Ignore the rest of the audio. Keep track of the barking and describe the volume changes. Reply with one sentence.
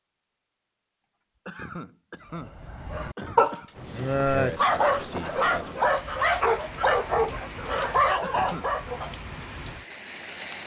The volume of the barking stays about the same.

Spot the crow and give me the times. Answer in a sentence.
You can't hear the crow here.